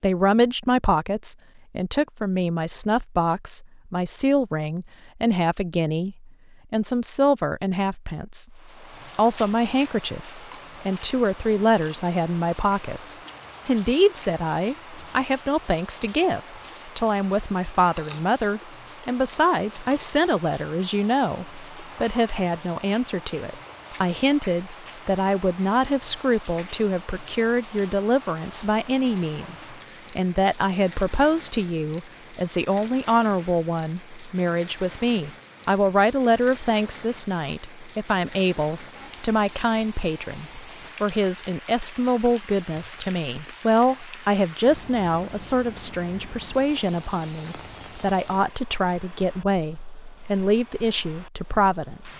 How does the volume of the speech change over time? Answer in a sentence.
The volume of the speech stays about the same.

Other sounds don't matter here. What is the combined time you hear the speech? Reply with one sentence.
The speech can be heard for 52 seconds in total.